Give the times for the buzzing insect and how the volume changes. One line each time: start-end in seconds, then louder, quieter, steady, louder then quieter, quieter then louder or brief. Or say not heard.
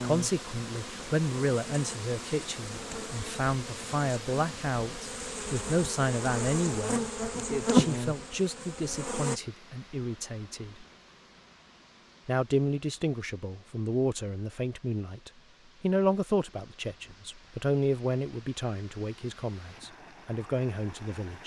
0.0-9.4 louder.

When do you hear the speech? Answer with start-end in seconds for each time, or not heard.
0.0-7.0, 7.7-10.8, 12.2-21.4.